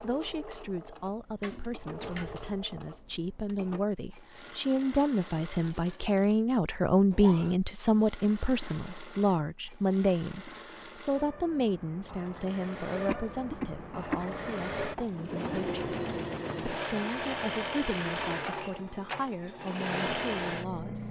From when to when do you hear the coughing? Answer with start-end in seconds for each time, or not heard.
13.1-14.3.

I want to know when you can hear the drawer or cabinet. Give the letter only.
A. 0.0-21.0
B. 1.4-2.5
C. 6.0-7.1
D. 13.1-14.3
B.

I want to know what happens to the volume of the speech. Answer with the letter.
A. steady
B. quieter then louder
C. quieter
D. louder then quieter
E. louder
D.